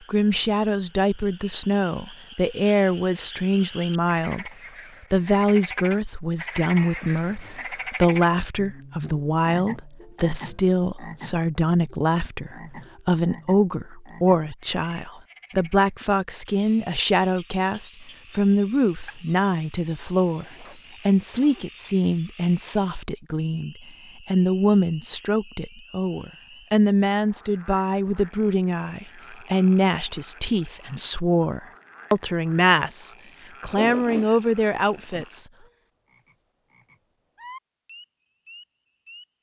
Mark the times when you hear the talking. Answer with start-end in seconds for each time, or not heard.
0.1-4.5, 5.1-35.5.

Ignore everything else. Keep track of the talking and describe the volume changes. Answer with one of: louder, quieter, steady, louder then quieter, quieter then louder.
steady.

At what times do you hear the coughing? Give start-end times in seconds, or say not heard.
not heard.